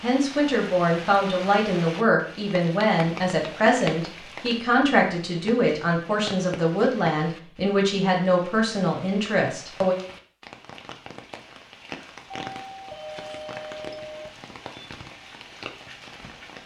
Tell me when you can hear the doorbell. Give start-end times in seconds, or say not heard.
12.4-14.3.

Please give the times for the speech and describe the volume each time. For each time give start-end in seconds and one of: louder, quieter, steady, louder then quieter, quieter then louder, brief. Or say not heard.
0.0-9.9 steady.